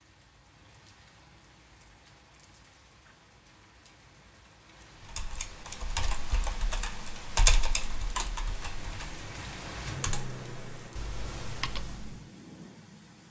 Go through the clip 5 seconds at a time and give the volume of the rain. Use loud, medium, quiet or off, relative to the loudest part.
quiet, loud, loud.